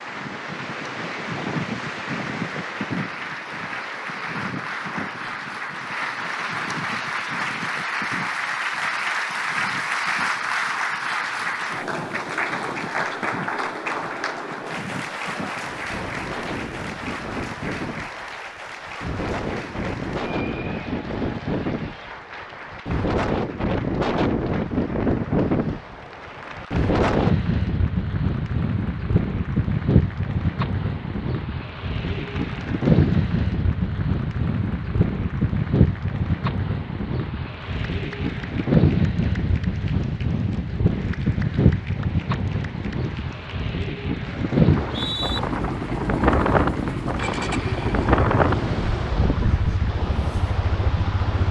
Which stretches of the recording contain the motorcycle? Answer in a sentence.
The motorcycle can be heard from 45.2 to 51.4 s.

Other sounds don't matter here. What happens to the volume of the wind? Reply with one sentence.
The loudness of the wind goes up.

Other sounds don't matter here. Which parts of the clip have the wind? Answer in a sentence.
The wind can be heard from 0.0 to 51.4 s.